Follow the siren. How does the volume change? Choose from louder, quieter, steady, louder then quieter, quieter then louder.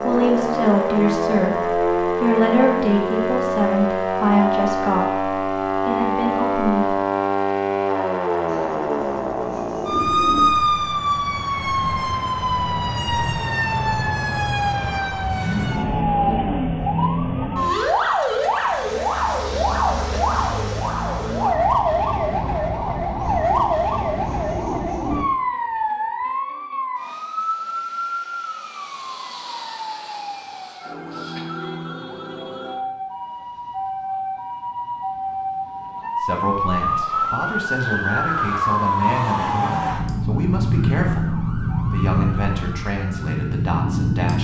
quieter then louder.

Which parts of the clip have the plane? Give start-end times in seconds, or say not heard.
not heard.